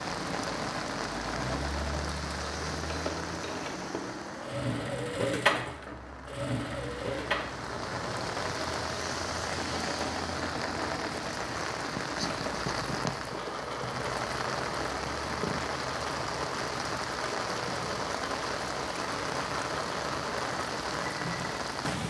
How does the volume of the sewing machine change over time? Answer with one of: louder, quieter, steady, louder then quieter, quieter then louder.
louder then quieter.